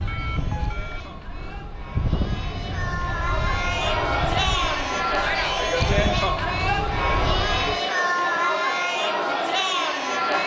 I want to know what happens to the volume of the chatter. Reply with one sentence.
The volume of the chatter goes up.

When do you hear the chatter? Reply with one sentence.
The chatter can be heard from 0.0 to 10.4 s.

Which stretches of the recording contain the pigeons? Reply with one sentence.
You can't hear the pigeons here.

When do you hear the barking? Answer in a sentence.
You can't hear the barking here.